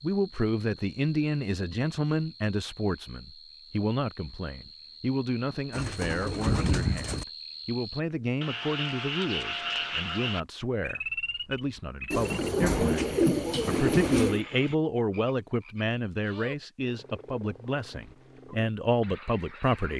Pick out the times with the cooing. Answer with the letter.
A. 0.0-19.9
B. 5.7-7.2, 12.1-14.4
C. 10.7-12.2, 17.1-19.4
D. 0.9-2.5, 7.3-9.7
B.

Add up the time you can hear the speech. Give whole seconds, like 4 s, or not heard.
20 s.